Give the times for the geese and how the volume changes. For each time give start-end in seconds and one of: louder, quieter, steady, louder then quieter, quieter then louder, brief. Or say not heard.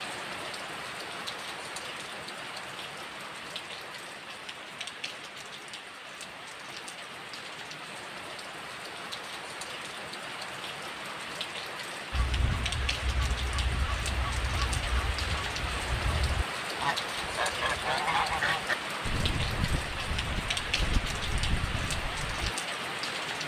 12.1-22.6 louder then quieter.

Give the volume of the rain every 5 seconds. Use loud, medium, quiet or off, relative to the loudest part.
medium, medium, loud, loud, loud.